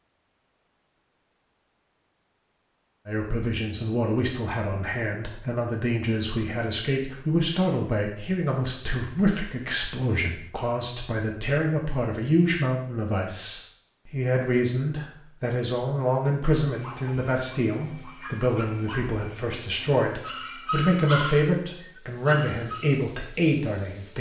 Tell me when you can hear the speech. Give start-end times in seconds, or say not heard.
3.0-24.1.